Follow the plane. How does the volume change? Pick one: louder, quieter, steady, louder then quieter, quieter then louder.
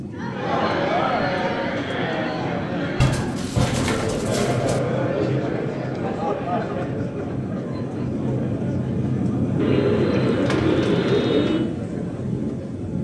louder.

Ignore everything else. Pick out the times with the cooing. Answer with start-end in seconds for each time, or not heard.
3.0-4.8, 9.6-11.6.